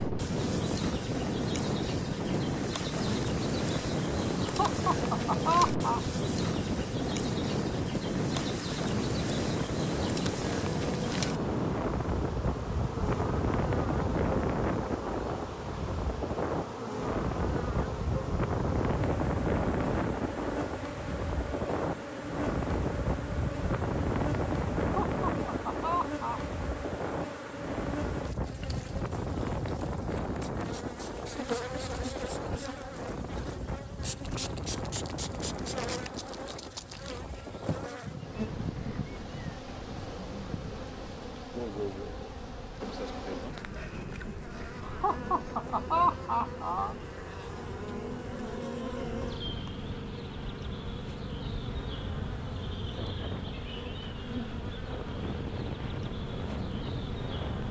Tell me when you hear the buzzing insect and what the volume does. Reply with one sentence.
You can hear the buzzing insect from 0.0 to 57.6 s, at a steady volume.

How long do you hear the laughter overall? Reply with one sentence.
The laughter can be heard for 5 seconds in total.